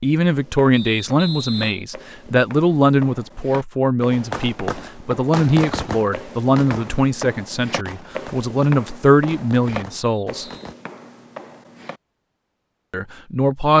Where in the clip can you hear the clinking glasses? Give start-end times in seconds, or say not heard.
not heard.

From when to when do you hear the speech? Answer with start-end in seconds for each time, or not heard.
0.0-10.4, 12.9-13.7.